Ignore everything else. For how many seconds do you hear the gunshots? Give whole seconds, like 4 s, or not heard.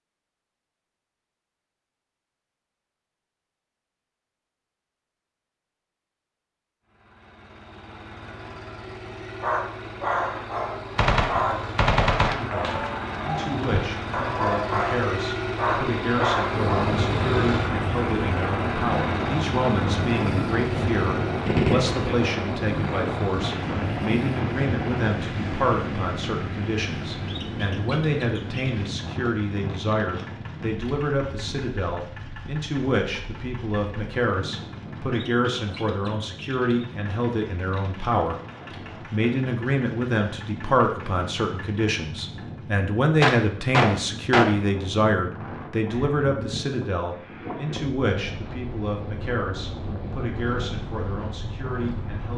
5 s.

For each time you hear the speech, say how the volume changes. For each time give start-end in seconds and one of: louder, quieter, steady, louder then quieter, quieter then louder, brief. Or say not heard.
12.2-38.4 steady
39.0-52.3 quieter.